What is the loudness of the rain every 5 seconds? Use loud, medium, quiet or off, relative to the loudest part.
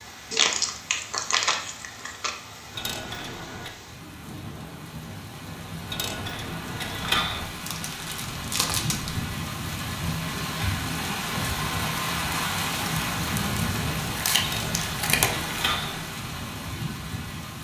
quiet, medium, loud, medium.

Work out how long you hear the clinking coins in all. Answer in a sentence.
You can hear the clinking coins for 4 seconds altogether.